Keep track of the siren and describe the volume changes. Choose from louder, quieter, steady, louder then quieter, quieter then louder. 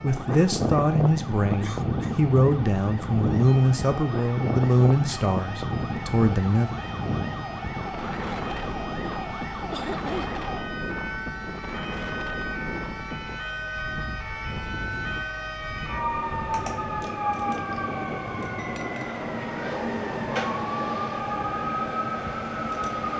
louder.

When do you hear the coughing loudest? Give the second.
10 s.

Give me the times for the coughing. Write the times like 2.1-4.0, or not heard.
1.6-2.2, 9.7-10.4, 18.6-19.2.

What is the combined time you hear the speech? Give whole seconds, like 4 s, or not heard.
7 s.